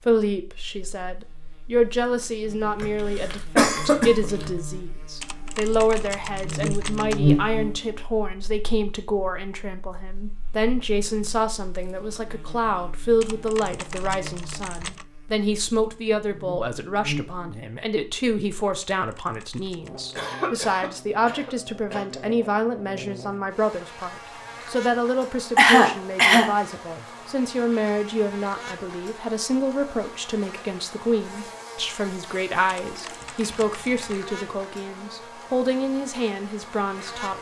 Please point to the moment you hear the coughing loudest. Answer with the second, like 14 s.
26 s.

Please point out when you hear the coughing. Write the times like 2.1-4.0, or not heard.
2.8-4.5, 20.1-22.1, 25.6-26.5.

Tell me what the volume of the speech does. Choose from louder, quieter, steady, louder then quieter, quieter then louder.
steady.